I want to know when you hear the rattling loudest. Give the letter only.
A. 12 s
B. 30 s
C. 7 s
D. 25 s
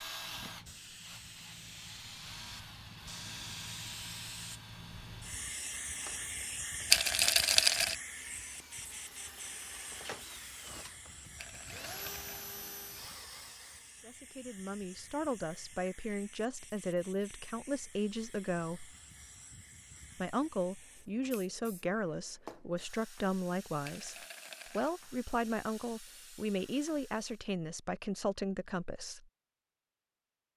C.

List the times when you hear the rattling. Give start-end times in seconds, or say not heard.
6.9-8.0, 11.3-12.4, 23.9-24.9.